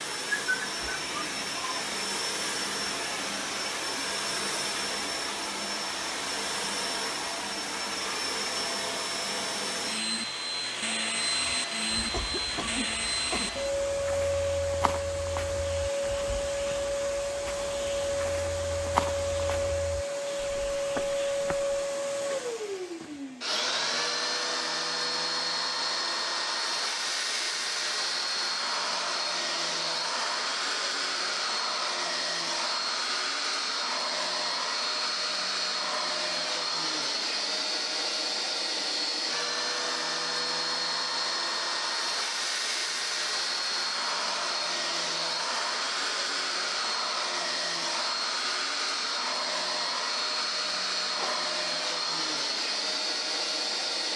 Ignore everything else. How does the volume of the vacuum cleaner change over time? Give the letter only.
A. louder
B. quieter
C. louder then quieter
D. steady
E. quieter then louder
D.